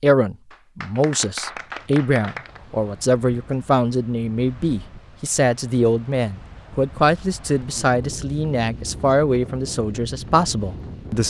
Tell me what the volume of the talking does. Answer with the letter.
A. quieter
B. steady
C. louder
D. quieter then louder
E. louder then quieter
B.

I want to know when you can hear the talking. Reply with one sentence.
You can hear the talking from 0.0 to 11.2 s.